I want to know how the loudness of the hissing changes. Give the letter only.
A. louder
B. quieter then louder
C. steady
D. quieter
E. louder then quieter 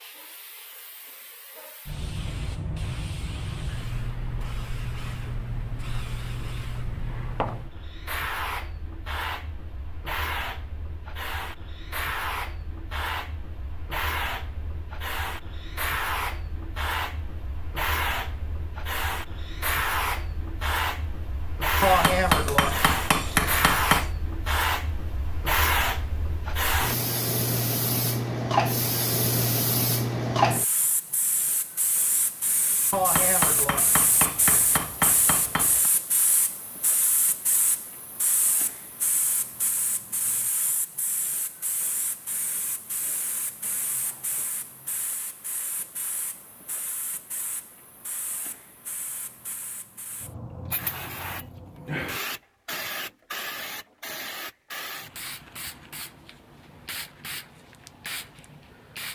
E.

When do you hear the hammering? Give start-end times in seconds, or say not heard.
21.8-24.1, 32.9-35.9.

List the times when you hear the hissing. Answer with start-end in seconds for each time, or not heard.
0.0-59.1.